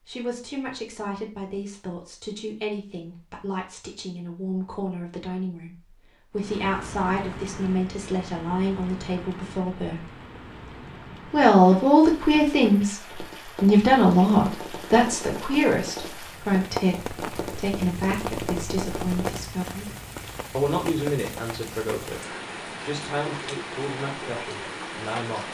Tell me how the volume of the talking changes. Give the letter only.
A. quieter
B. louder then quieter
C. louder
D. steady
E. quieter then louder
B.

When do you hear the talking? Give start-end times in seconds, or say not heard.
0.0-10.1, 11.3-19.9, 20.6-25.5.